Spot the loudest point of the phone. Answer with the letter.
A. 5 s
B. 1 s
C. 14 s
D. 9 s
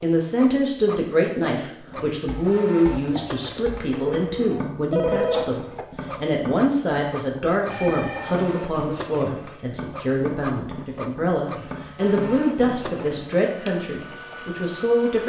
A.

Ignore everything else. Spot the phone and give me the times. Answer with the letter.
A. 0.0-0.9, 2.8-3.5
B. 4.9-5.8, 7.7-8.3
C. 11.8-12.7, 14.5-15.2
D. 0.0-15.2
B.